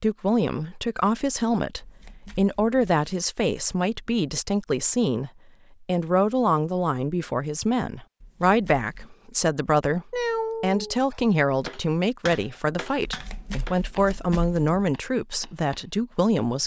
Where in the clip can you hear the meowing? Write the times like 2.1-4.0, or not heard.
10.1-11.2.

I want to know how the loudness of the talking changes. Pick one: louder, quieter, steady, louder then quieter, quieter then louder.
steady.